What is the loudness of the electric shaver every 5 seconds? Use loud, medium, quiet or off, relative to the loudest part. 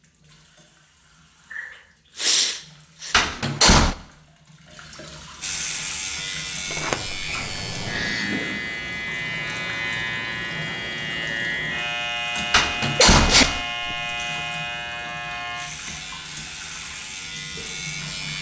off, loud, loud, medium.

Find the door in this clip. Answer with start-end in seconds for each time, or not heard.
3.1-4.0, 6.7-8.1, 12.5-13.7.